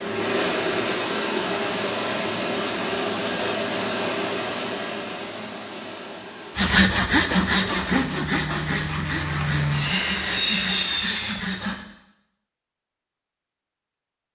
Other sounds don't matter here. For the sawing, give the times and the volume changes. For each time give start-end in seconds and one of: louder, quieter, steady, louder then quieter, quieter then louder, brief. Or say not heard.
6.5-11.8 quieter.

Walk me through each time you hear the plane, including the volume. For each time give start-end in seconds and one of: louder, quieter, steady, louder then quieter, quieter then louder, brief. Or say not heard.
0.0-11.3 quieter then louder.